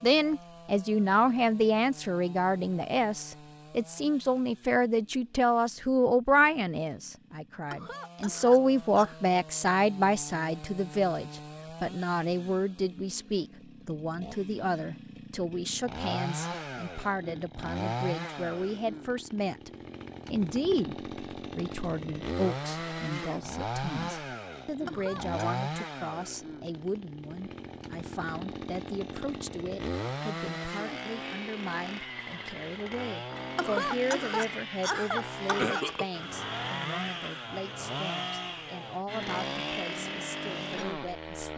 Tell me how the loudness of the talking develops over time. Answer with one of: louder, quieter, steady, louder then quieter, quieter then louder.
quieter.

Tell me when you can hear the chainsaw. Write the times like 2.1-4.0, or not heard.
0.0-41.5.